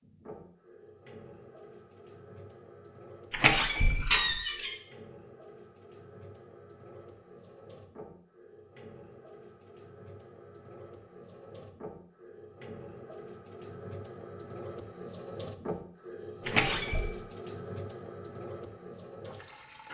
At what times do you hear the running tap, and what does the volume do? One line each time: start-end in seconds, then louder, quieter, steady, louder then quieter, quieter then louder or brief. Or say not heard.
0.0-19.8 louder.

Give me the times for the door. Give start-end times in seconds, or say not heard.
3.3-4.8, 16.4-17.1.